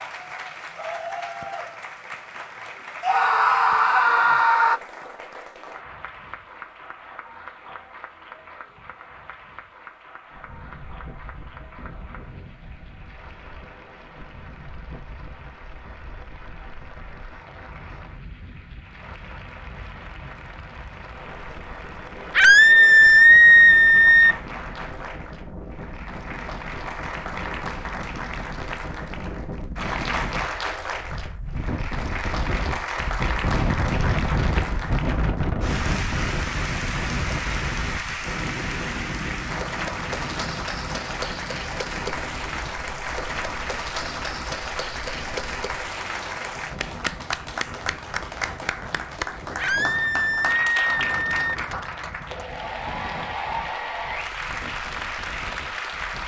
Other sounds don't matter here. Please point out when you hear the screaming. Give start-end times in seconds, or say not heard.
3.0-4.8, 22.4-24.4, 49.5-51.5.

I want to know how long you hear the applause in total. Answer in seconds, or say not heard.
56 s.